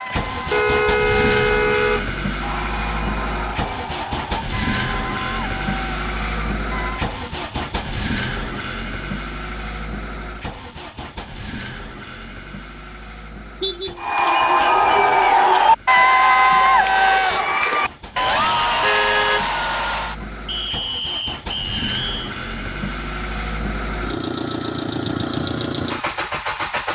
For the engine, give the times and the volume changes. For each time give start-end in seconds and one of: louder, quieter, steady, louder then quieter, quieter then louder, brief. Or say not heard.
0.0-26.9 quieter then louder.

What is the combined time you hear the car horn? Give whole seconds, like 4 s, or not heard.
3 s.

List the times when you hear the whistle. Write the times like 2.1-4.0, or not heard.
20.4-22.4.